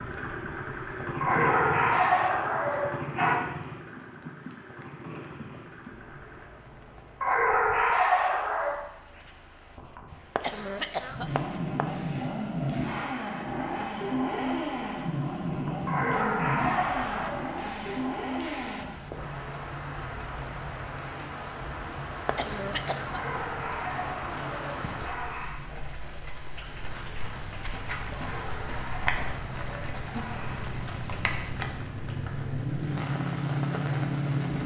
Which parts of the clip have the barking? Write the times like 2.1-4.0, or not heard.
1.2-3.4, 7.2-8.8, 15.8-17.5, 23.1-25.6, 28.1-30.7.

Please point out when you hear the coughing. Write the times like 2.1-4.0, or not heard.
10.3-11.8, 22.2-23.3.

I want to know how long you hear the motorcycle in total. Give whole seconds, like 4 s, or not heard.
30 s.